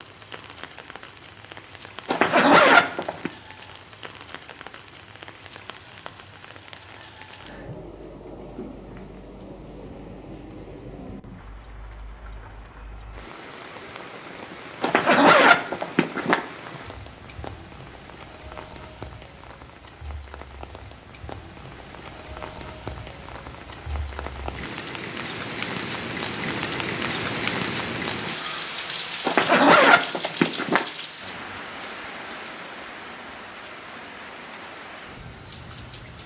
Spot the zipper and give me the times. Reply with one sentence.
The zipper can be heard from 2.0 to 3.3 s, from 14.8 to 16.4 s and from 29.2 to 30.9 s.